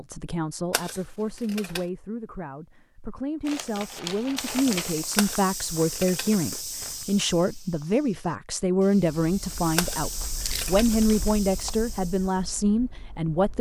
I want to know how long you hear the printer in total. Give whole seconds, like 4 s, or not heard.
not heard.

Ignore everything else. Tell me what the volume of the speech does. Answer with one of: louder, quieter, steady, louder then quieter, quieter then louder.
louder.